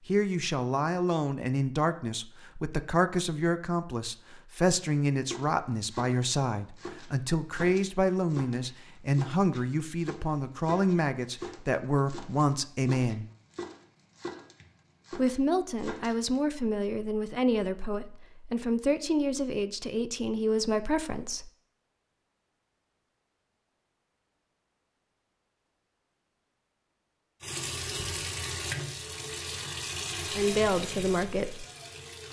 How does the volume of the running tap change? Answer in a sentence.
The loudness of the running tap goes down.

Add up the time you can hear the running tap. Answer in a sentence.
You can hear the running tap for 5 seconds altogether.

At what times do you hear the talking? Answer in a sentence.
The talking can be heard from 0.1 to 13.2 s, from 15.1 to 21.5 s and from 30.4 to 31.6 s.